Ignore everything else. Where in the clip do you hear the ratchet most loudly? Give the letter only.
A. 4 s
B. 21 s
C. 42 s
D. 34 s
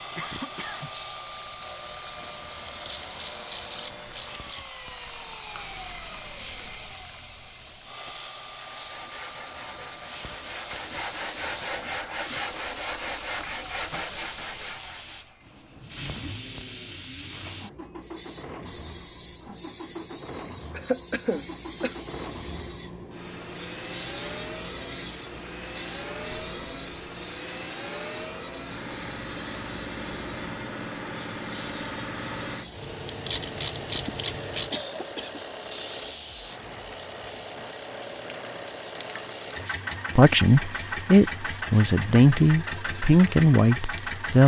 D.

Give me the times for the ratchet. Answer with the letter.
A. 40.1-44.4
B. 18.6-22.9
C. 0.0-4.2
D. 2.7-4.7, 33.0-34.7
D.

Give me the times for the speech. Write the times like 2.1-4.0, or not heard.
40.1-44.4.